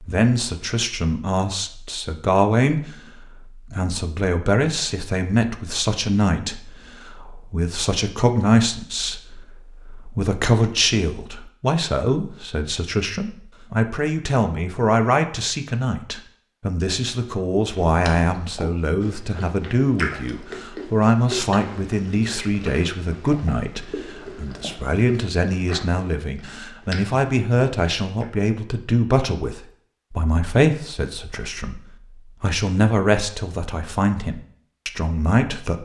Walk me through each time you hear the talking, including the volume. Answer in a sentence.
The talking can be heard from 0.0 to 35.8 s, at a steady volume.